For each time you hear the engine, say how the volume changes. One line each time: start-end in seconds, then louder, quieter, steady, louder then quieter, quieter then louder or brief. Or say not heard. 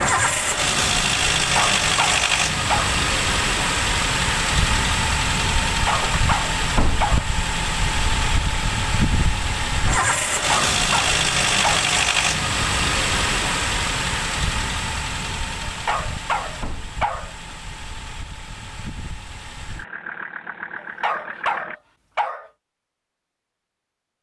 0.0-21.8 quieter.